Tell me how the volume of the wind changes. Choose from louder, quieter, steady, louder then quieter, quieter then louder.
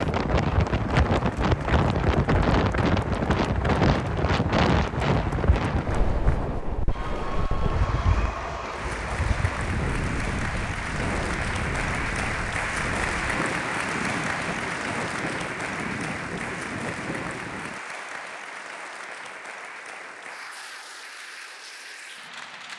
quieter.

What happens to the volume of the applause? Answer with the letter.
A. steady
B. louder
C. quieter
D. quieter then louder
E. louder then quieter
E.